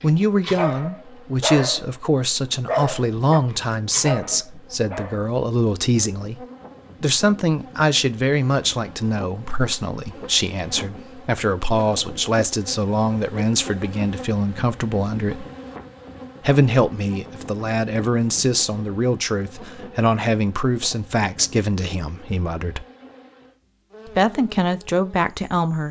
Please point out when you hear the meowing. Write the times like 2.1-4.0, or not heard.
not heard.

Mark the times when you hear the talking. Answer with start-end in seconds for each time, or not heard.
0.0-15.4, 16.4-22.9, 24.1-25.8.